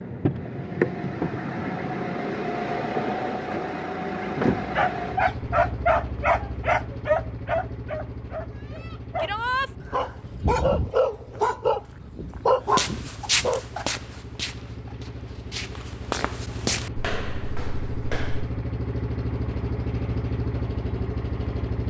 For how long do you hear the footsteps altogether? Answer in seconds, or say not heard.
6 s.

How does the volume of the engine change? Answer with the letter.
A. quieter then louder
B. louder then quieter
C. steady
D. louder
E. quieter
A.